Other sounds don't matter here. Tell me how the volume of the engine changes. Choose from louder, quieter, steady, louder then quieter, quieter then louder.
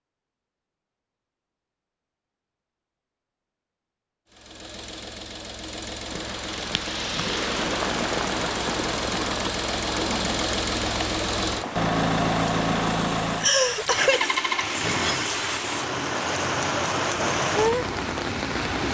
louder then quieter.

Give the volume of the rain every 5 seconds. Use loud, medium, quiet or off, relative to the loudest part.
off, loud, medium, loud.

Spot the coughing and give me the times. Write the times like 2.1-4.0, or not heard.
13.4-14.3.